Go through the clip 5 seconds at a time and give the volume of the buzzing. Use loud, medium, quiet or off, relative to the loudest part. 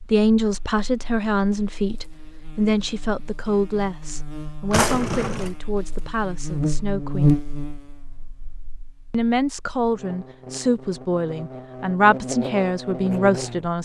quiet, loud, medium.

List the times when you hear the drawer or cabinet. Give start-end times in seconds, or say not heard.
4.7-5.5.